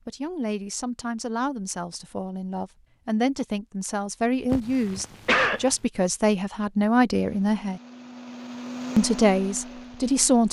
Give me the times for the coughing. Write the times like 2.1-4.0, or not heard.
4.5-5.7.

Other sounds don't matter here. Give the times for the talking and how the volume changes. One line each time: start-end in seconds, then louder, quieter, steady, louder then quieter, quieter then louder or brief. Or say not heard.
0.1-7.8 louder
8.9-10.4 brief.